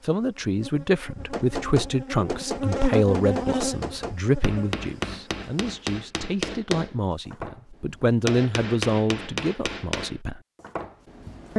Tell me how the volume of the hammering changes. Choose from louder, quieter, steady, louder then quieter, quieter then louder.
steady.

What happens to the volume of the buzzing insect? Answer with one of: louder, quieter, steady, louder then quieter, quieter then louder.
louder then quieter.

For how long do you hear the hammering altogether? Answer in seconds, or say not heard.
10 s.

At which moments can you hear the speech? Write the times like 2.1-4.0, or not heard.
0.0-10.4.